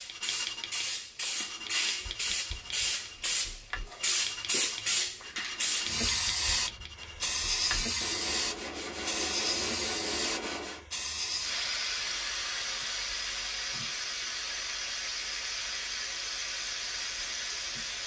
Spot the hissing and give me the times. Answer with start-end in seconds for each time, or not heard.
0.0-18.0.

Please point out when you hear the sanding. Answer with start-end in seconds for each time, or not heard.
0.0-10.8.